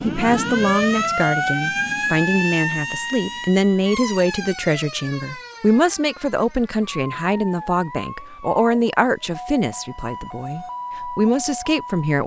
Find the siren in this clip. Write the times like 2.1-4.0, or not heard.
0.0-12.2.